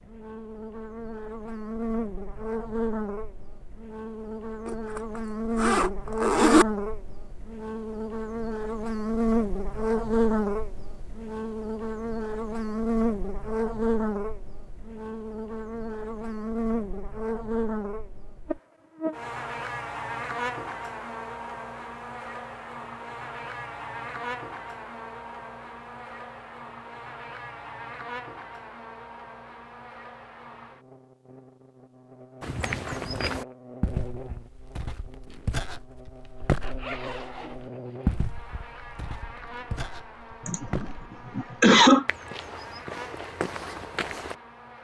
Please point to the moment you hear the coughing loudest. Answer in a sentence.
The volume of the coughing peaks at 42 seconds.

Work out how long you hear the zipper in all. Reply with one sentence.
You can hear the zipper for 4 seconds altogether.